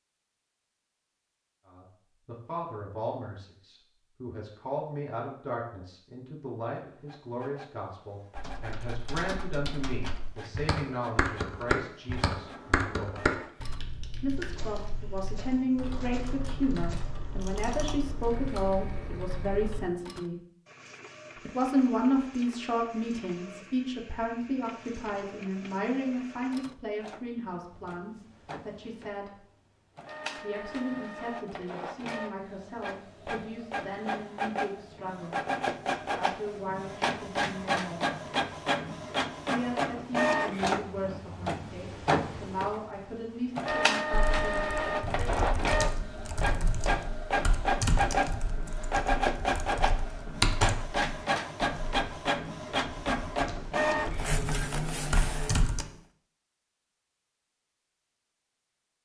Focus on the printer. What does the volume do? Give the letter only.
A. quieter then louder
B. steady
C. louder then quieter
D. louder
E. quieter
D.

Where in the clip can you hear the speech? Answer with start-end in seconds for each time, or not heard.
1.6-13.2, 14.2-20.4, 21.4-29.4, 30.4-35.4, 36.0-38.1, 39.5-44.9.